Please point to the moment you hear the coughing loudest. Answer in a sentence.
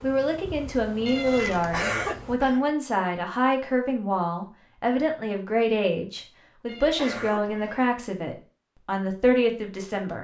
The volume of the coughing peaks at 2 seconds.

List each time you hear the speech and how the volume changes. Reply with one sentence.
You can hear the speech from 0.0 to 10.1 s, at a steady volume.